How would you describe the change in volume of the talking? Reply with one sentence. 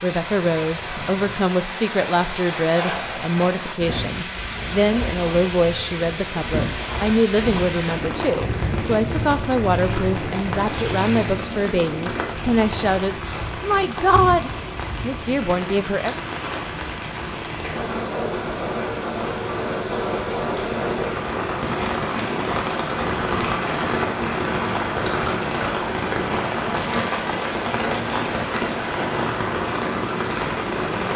The loudness of the talking stays about the same.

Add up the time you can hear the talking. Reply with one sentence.
You can hear the talking for 16 seconds altogether.